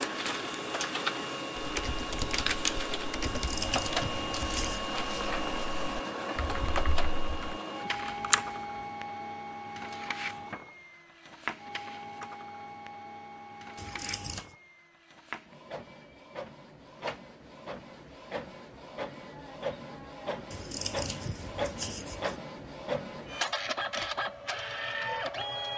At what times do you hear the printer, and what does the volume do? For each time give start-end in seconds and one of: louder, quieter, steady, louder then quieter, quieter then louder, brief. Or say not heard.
0.0-25.7 quieter then louder.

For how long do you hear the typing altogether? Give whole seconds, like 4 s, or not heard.
7 s.